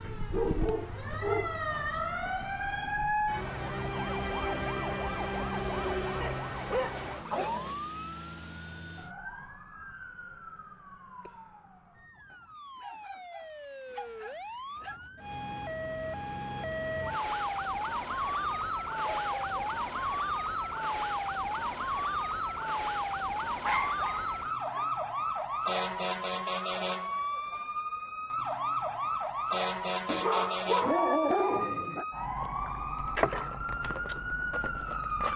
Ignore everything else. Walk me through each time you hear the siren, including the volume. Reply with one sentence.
You can hear the siren from 0.0 to 35.3 s, getting quieter then louder.